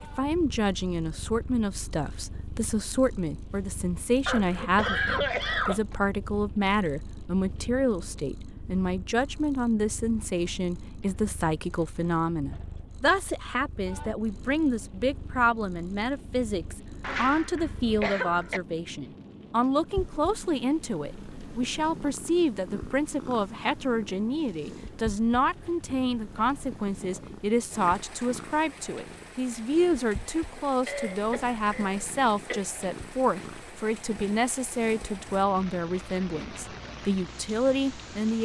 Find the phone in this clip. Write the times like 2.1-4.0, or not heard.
not heard.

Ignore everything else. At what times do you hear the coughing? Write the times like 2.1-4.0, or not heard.
4.2-6.0, 17.0-18.6, 30.9-32.6.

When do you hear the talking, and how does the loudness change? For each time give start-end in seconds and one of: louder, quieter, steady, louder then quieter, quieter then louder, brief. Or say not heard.
0.0-38.4 steady.